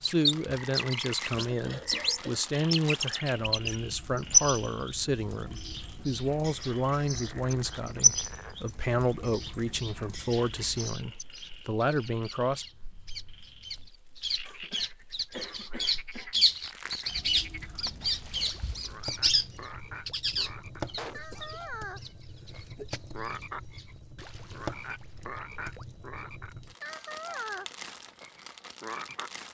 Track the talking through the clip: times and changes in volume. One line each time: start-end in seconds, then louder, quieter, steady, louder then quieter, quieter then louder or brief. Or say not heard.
0.0-12.7 steady.